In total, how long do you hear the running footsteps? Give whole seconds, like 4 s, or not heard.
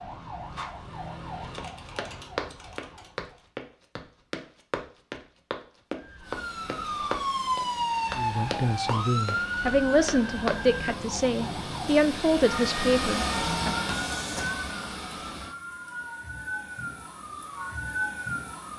9 s.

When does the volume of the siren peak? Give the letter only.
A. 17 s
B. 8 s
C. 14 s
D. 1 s
B.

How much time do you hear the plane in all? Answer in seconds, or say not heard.
9 s.